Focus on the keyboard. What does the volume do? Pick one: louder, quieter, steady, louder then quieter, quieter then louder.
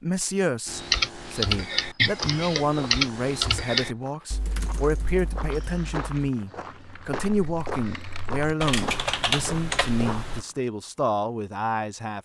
quieter then louder.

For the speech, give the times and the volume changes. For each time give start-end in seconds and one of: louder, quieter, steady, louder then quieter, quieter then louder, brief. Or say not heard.
0.0-12.1 steady.